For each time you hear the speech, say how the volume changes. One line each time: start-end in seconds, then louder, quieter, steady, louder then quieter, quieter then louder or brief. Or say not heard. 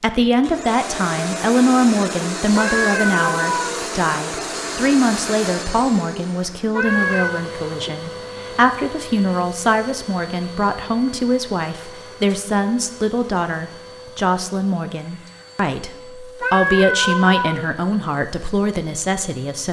0.0-19.6 steady.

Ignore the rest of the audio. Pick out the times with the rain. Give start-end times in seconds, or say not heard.
not heard.